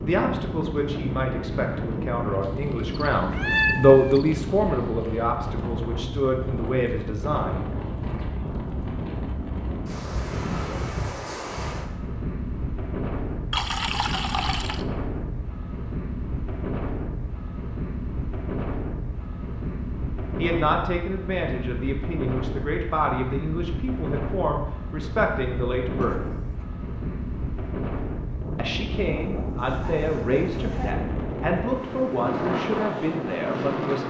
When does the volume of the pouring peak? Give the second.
14 s.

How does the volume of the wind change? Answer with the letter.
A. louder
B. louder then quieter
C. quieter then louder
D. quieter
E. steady
E.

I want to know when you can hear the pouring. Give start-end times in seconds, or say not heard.
13.5-14.8, 29.1-30.9.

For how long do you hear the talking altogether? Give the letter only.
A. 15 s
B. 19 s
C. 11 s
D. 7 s
B.